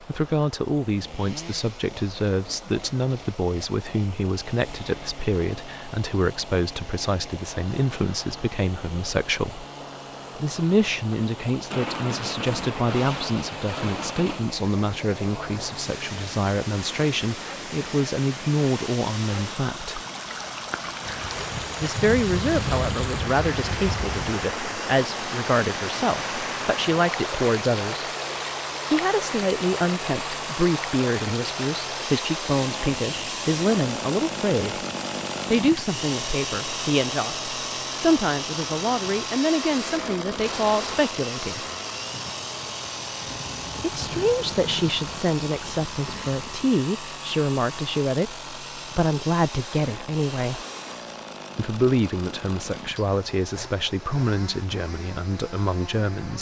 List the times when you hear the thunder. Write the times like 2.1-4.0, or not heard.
11.7-14.5, 21.0-24.2, 43.2-46.7.